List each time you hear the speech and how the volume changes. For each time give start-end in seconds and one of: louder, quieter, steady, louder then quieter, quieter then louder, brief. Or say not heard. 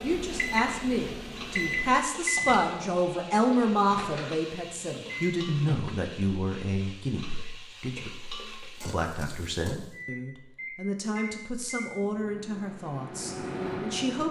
0.0-14.2 quieter.